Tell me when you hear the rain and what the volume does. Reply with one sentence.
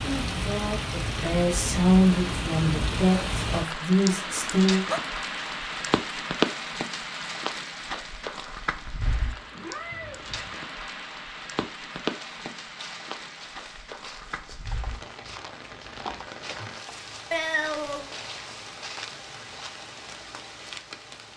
The rain can be heard from 0.0 to 21.3 s, getting quieter.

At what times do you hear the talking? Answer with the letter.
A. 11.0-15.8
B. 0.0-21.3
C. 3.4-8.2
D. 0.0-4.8
D.